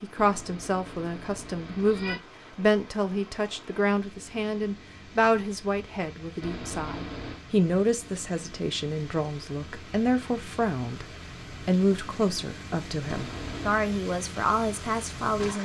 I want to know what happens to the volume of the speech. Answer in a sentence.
The loudness of the speech stays about the same.